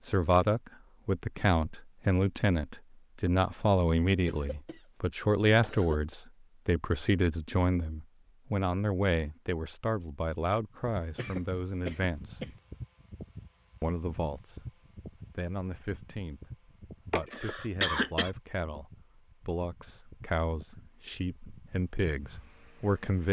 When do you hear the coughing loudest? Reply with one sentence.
The volume of the coughing peaks at 18 seconds.